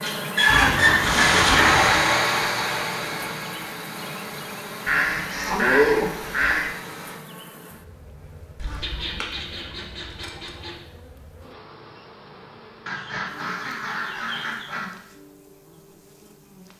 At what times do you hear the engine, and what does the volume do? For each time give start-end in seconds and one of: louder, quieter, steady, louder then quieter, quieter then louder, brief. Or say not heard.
0.0-7.2 quieter.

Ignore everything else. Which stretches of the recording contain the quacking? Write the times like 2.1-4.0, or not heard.
0.5-2.0, 4.8-6.7, 8.6-10.8, 12.8-14.8.